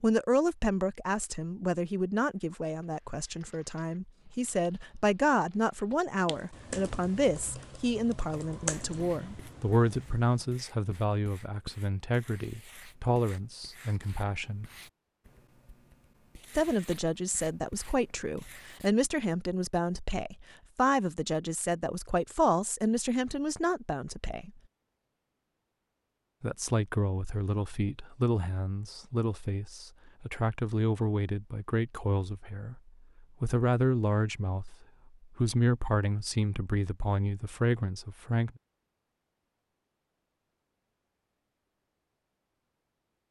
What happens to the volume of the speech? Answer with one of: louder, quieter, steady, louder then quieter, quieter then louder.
steady.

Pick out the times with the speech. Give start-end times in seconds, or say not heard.
0.0-14.7, 16.6-24.5, 26.4-38.5.